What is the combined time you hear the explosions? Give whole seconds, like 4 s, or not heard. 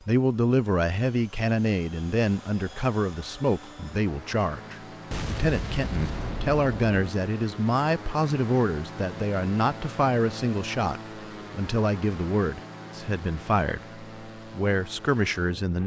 2 s.